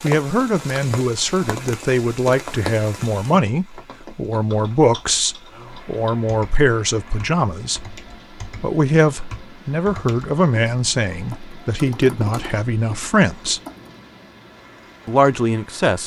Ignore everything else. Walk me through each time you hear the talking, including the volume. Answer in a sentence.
The talking can be heard from 0.0 to 13.6 s, at a steady volume; and briefly from 15.1 to 16.0 s.